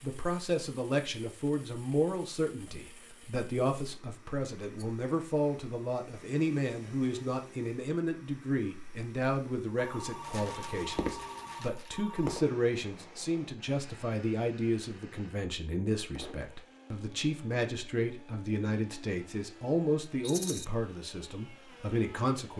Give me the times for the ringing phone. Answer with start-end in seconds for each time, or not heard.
9.8-12.5.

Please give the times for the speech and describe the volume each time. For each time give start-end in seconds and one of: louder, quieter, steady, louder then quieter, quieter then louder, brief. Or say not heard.
0.0-22.5 steady.